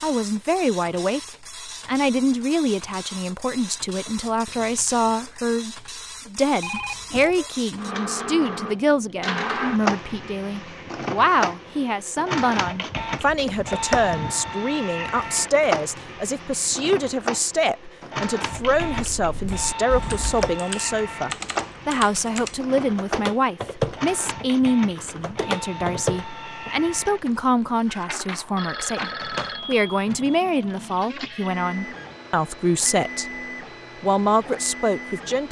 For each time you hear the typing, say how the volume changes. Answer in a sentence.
The typing can be heard from 18.4 to 26.8 s, getting louder.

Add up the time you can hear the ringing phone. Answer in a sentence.
The ringing phone can be heard for 4 seconds in total.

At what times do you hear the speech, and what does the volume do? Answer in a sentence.
The speech can be heard from 0.0 to 33.3 s, at a steady volume; and briefly from 34.0 to 35.4 s.